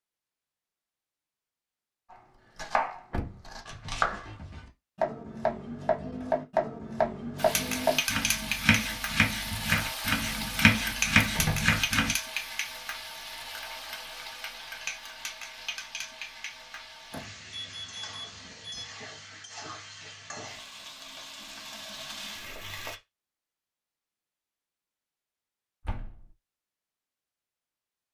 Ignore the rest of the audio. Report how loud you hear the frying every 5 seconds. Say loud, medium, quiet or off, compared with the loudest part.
off, loud, loud, medium, medium, off.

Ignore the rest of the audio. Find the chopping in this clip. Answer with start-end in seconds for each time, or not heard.
2.1-12.2.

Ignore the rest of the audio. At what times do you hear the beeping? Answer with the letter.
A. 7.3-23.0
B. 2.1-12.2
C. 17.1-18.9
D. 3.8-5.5
C.